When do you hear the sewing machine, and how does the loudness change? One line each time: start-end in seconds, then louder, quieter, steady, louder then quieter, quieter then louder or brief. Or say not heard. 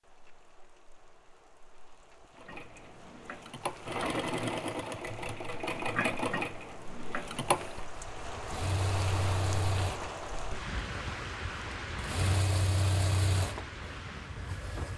2.4-14.9 quieter then louder.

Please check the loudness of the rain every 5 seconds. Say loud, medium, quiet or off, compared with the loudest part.
quiet, loud, loud.